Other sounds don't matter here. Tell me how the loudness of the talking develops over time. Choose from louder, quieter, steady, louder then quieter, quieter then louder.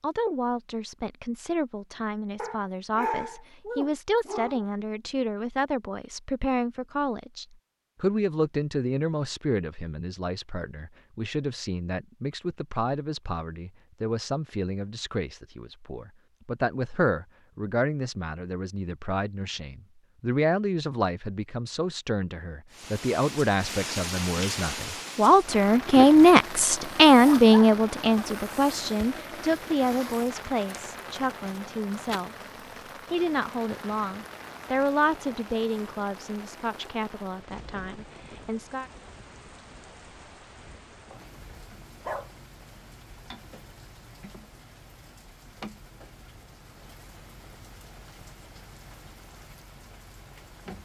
louder then quieter.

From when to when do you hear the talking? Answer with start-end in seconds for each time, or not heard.
0.0-32.5, 33.1-38.9.